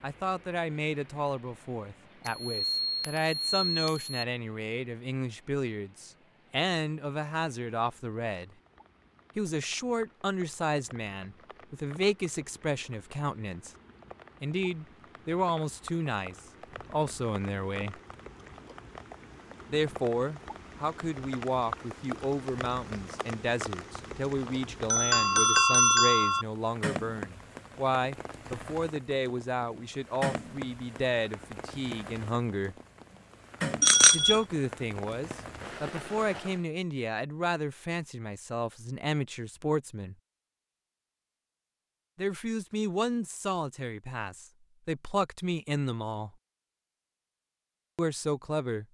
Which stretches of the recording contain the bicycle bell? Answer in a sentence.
You can hear the bicycle bell from 2.2 to 4.2 s, from 24.4 to 26.4 s and from 33.8 to 34.4 s.